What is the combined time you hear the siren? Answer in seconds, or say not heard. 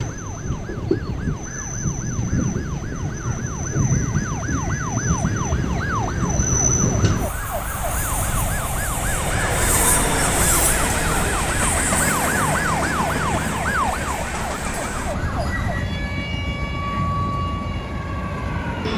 19 s.